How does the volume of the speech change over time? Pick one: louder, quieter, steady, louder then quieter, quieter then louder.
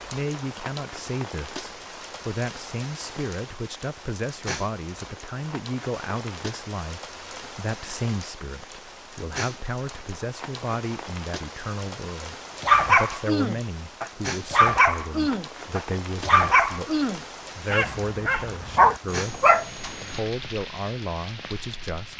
steady.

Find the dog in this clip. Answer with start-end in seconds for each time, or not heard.
12.6-20.2.